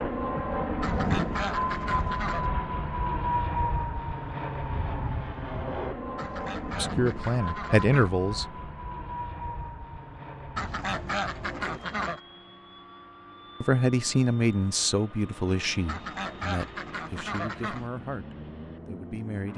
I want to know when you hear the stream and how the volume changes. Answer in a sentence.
The stream can't be heard in this clip.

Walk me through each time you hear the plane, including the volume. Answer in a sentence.
The plane can be heard from 0.0 to 19.5 s, getting quieter.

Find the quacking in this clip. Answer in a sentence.
The quacking can be heard from 0.8 to 2.5 s, from 6.2 to 8.2 s, from 10.6 to 12.2 s and from 15.8 to 17.9 s.